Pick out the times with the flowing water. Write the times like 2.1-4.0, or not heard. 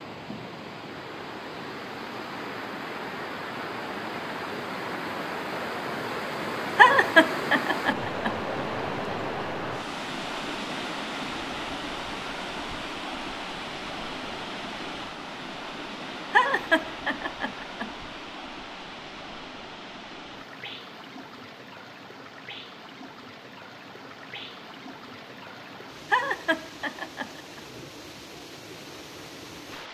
0.0-29.9.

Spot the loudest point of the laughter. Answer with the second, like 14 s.
7 s.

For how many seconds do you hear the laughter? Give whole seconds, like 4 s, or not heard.
5 s.